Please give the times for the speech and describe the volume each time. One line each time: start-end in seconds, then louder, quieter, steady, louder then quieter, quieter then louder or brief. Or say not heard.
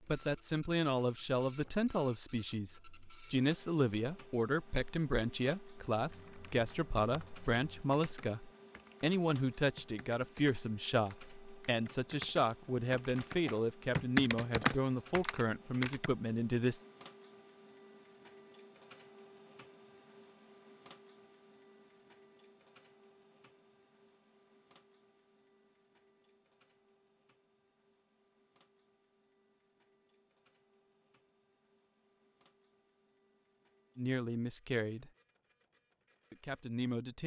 0.1-16.8 steady
34.0-35.1 brief
36.3-37.2 brief.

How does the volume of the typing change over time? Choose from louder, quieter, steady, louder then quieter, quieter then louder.
louder.